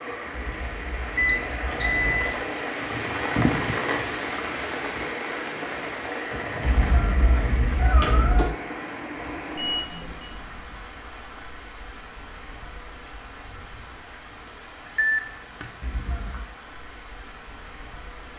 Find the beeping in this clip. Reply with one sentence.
You can hear the beeping from 1.1 to 2.4 s, from 9.6 to 10.3 s and from 14.9 to 16.1 s.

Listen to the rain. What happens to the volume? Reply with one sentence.
The loudness of the rain goes down.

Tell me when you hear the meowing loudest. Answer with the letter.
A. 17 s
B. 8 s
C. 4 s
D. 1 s
B.